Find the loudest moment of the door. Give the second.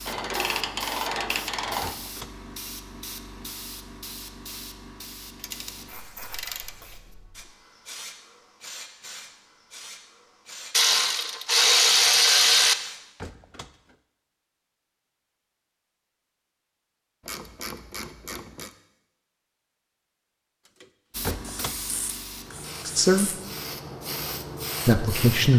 21 s.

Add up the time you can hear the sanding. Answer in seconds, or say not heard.
not heard.